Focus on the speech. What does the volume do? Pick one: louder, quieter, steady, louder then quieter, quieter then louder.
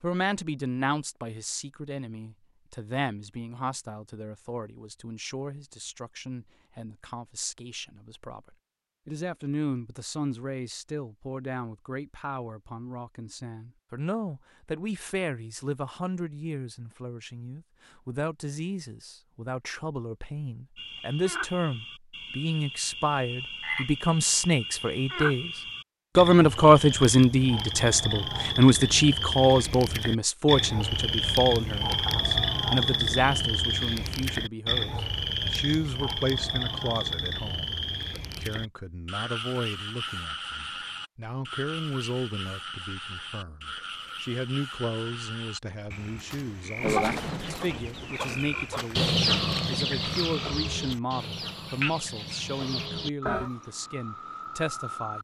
louder then quieter.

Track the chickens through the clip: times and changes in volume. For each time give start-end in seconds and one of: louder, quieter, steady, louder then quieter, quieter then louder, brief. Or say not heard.
46.8-53.5 louder then quieter.